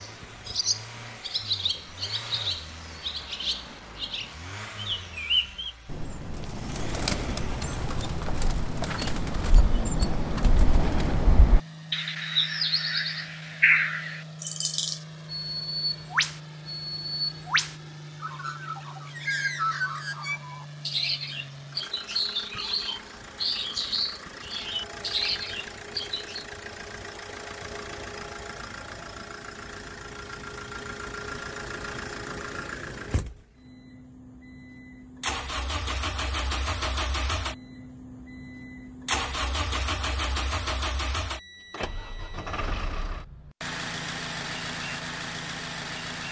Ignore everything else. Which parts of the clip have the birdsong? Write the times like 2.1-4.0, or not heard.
0.0-26.4.